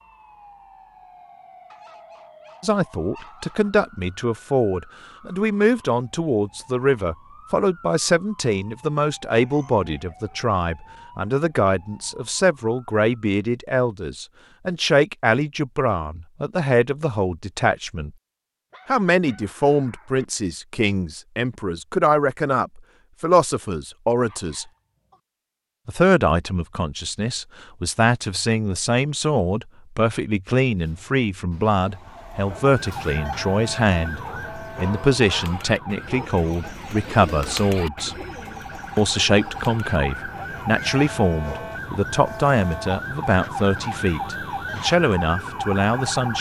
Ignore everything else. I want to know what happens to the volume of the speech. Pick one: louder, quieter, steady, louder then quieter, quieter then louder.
steady.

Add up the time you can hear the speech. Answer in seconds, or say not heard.
41 s.